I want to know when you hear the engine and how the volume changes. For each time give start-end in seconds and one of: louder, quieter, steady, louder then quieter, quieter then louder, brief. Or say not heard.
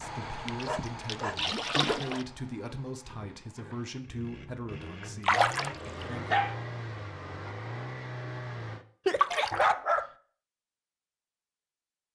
0.0-8.8 quieter then louder.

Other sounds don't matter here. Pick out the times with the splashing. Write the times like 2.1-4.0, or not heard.
0.5-2.2, 5.2-6.0, 9.2-9.7.